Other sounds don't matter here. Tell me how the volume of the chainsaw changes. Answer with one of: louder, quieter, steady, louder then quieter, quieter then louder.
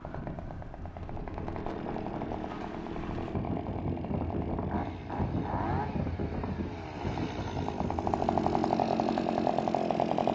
louder.